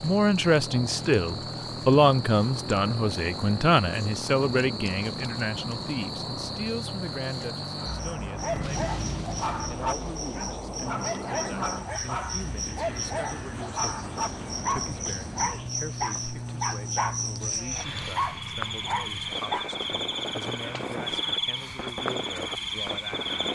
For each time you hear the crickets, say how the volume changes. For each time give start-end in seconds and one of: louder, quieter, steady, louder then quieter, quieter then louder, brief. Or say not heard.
0.0-23.5 louder.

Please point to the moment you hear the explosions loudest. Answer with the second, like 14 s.
9 s.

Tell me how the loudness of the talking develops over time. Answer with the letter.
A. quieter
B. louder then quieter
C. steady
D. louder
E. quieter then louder
A.